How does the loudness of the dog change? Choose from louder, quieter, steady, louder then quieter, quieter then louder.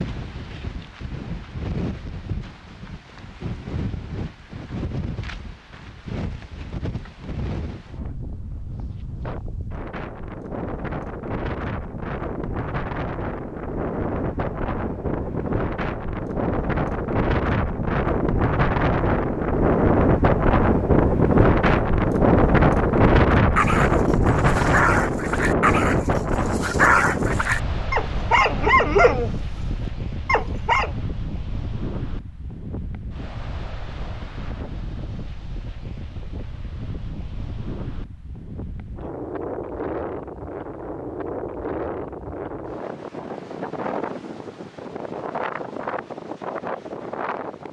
louder then quieter.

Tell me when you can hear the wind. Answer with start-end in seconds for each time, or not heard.
0.0-47.6.